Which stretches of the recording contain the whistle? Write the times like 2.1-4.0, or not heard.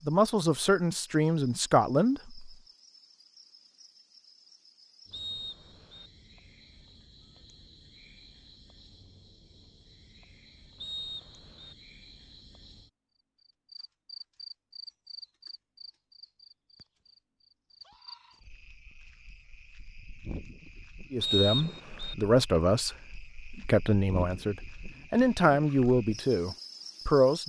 5.1-6.1, 10.8-11.8, 21.2-22.1.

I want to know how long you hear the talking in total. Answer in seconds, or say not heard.
9 s.